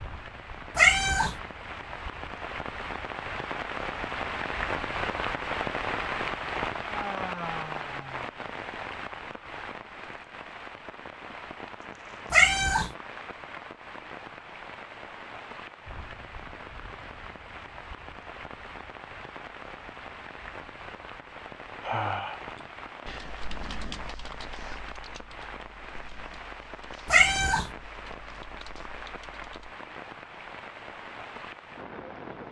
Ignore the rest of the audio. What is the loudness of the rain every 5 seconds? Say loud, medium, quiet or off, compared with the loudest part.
loud, loud, medium, medium, medium, medium, medium.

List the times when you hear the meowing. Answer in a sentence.
You can hear the meowing from 0.8 to 1.4 s, from 12.3 to 12.9 s and from 27.1 to 27.7 s.